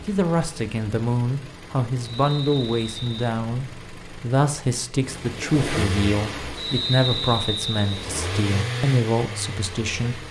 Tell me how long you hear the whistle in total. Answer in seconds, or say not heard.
3 s.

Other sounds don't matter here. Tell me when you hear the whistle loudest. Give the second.
7 s.